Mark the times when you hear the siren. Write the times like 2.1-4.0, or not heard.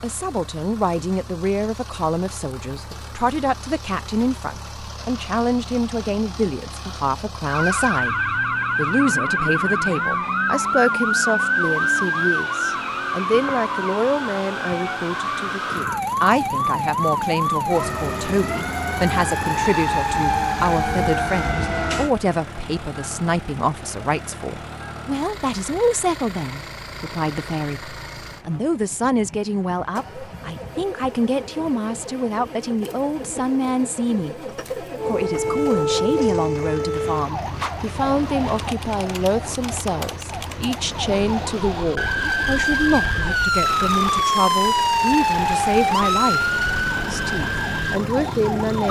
7.5-22.1, 35.0-48.8.